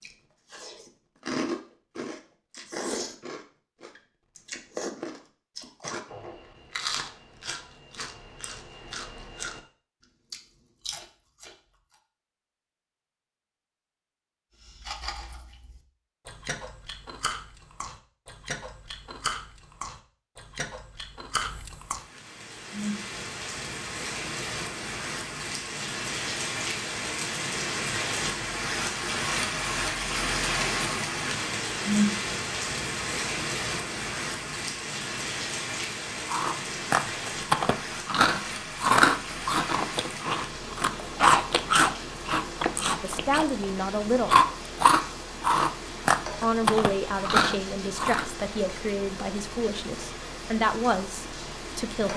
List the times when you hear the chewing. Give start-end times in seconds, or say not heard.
0.0-9.6, 10.3-11.9, 14.6-22.0, 36.2-43.6, 44.2-48.2.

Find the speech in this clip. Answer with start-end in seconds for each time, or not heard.
43.0-44.4, 46.4-52.1.